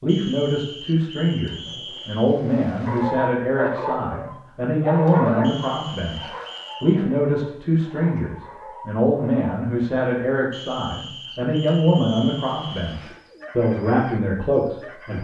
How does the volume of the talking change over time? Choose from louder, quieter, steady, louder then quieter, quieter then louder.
steady.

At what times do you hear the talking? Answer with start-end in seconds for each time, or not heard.
0.0-15.1.